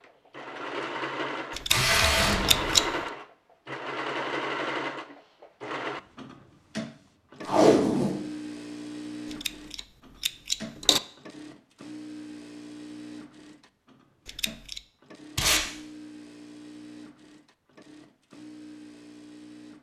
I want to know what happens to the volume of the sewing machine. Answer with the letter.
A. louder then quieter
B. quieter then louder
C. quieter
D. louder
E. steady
C.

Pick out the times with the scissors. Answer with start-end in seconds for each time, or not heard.
1.5-3.0, 9.3-11.0, 14.2-14.8.